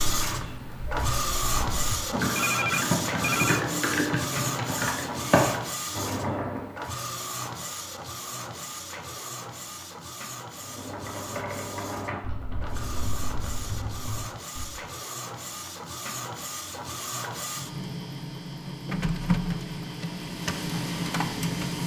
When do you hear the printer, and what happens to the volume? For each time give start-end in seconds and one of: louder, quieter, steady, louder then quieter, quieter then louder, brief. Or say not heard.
0.0-21.8 quieter then louder.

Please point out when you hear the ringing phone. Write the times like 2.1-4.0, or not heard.
2.4-3.6.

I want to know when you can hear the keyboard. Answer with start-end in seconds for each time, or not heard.
0.0-6.8, 10.6-14.8.